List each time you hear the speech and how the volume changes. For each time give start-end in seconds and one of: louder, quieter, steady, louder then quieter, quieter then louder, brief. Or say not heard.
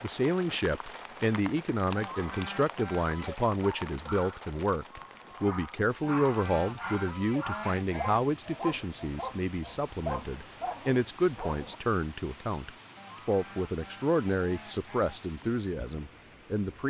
0.0-16.8 steady.